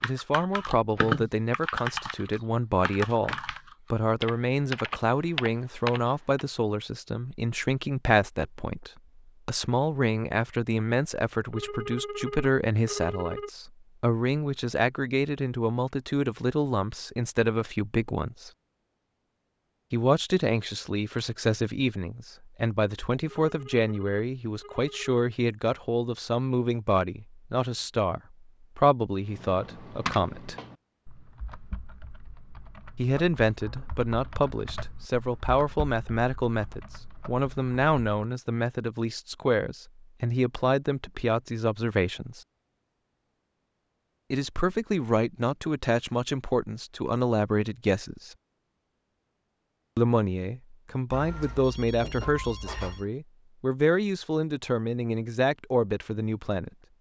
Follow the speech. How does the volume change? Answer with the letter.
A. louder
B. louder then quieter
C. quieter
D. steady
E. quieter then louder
D.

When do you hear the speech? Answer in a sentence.
You can hear the speech from 0.0 to 18.5 s, from 19.9 to 30.6 s, from 33.0 to 42.4 s, from 44.3 to 48.4 s and from 50.0 to 56.7 s.